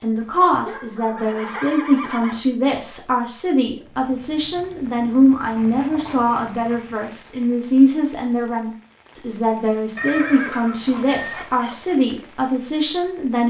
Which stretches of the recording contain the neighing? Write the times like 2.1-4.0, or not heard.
0.9-2.4, 9.9-11.4.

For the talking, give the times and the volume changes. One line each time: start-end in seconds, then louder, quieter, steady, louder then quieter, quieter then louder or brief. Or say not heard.
0.0-13.4 steady.